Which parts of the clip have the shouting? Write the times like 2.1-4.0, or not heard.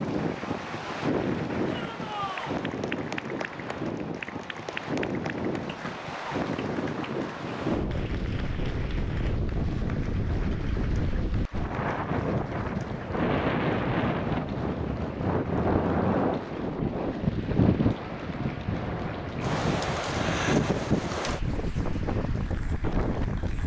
1.6-2.5.